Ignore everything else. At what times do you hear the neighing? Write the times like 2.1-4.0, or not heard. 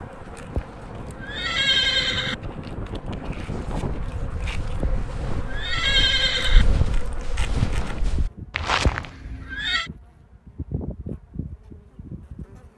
0.5-2.4, 4.8-6.7, 8.8-9.9.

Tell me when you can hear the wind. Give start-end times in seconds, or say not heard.
0.0-7.2.